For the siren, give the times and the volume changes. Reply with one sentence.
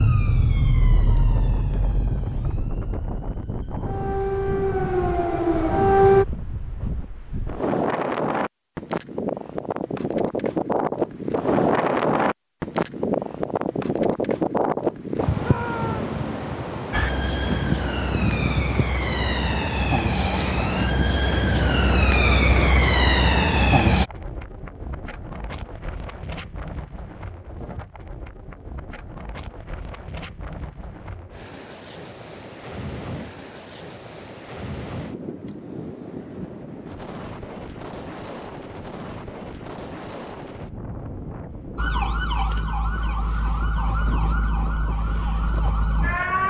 You can hear the siren from 0.0 to 6.2 s, getting quieter then louder; from 16.9 to 24.1 s, getting louder; and from 41.8 to 46.4 s, at a steady volume.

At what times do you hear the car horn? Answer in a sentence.
The car horn can't be heard in this clip.